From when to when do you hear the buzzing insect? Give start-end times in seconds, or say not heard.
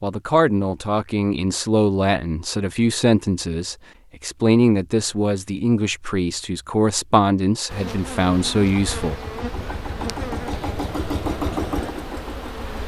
7.7-12.8.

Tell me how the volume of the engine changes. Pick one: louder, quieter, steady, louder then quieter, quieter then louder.
louder then quieter.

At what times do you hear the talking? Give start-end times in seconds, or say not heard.
0.0-9.2.